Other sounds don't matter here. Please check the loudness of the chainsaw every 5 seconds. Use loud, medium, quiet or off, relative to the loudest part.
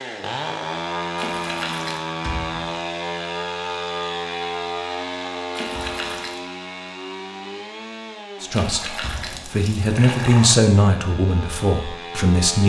loud, medium, medium.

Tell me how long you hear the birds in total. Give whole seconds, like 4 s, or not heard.
not heard.